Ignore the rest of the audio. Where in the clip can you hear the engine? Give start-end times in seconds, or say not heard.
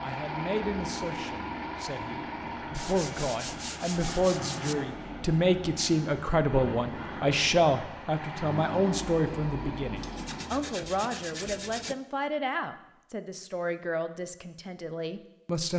0.0-10.6.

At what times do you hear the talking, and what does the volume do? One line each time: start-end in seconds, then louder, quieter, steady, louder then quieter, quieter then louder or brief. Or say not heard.
0.0-15.7 louder then quieter.